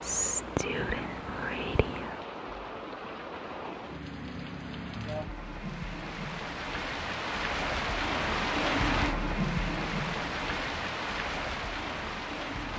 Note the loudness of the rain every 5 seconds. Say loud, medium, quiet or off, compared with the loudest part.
medium, loud, loud.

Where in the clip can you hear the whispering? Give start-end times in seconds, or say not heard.
0.0-2.2.